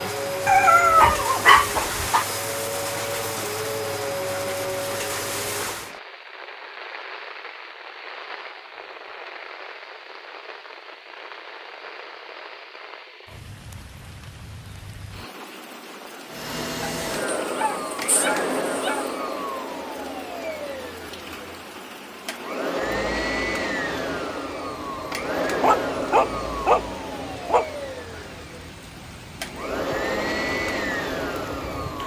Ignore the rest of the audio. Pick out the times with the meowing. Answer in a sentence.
You can't hear the meowing here.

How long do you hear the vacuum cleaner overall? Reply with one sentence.
The vacuum cleaner can be heard for 22 seconds in total.